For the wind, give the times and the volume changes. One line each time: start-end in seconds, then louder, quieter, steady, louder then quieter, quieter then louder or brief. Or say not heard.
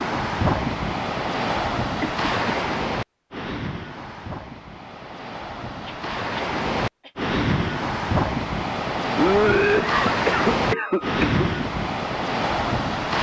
0.0-13.1 quieter then louder.